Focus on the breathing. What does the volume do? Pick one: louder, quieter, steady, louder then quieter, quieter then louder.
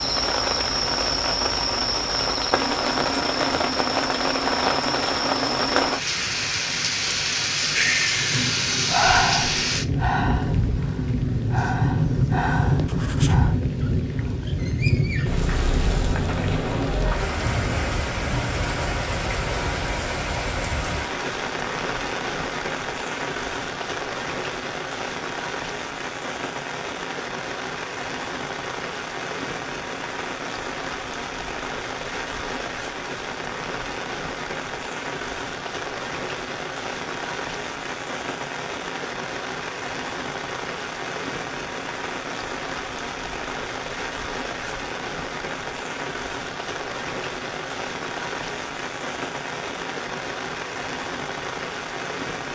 quieter.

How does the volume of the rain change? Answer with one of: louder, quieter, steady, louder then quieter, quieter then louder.
quieter.